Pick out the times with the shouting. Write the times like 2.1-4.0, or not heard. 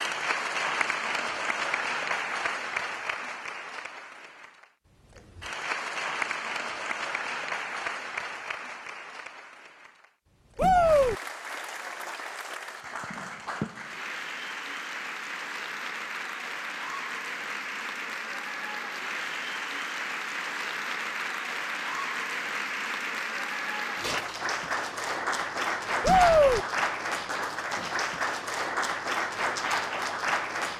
10.6-11.2, 26.0-26.6.